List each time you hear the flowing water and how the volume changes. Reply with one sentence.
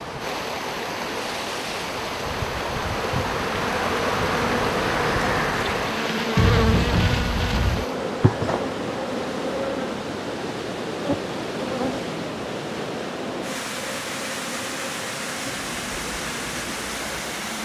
You can hear the flowing water from 0.0 to 17.6 s, at a steady volume.